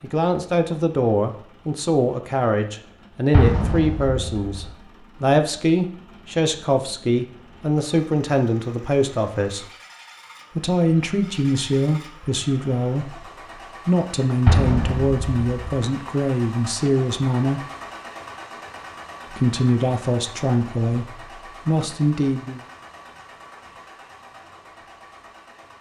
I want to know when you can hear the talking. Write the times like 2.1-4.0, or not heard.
0.0-9.7, 10.6-13.2, 13.8-17.6, 19.3-22.6.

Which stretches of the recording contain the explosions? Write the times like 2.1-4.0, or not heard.
3.3-4.7, 14.4-15.7.